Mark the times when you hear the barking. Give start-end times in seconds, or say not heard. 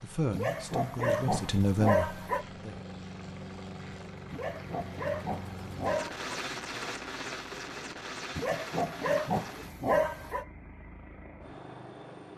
0.3-2.5, 4.3-6.2, 8.3-10.4.